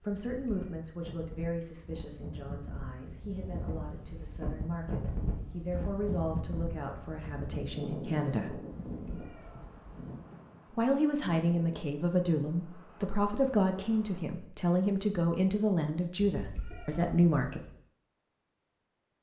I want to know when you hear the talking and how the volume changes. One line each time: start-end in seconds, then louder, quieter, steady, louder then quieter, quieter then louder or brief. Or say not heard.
0.0-8.6 quieter then louder
10.7-17.6 steady.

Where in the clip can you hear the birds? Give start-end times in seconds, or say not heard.
not heard.